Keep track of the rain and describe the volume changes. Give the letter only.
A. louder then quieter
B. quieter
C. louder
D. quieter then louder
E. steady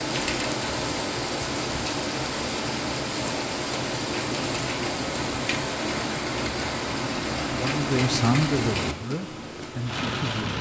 E.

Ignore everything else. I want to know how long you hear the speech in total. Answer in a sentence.
The speech can be heard for 3 seconds in total.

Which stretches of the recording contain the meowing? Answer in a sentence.
The meowing can't be heard in this clip.